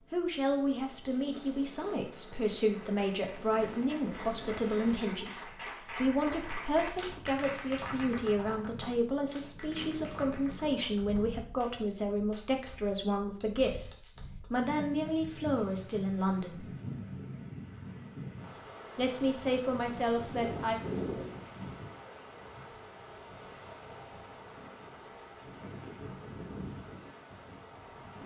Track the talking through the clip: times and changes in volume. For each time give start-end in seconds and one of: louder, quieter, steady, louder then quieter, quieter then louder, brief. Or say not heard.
0.1-16.6 steady
18.9-20.8 brief.